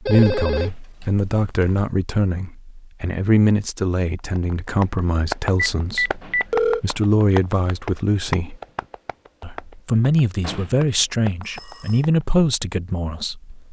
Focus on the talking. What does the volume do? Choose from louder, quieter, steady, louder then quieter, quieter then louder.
steady.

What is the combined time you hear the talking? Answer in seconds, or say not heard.
13 s.